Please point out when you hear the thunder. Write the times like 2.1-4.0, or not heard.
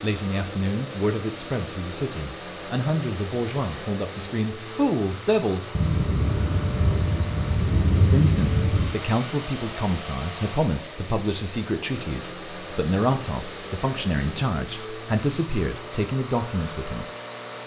5.8-8.9.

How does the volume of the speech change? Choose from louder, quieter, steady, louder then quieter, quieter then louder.
steady.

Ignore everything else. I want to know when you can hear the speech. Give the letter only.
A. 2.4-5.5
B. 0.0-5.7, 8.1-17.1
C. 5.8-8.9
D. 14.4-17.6
B.